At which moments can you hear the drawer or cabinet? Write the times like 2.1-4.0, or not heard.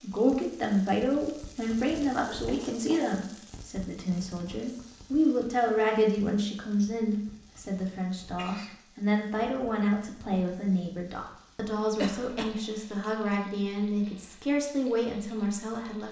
not heard.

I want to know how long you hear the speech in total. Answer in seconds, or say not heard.
16 s.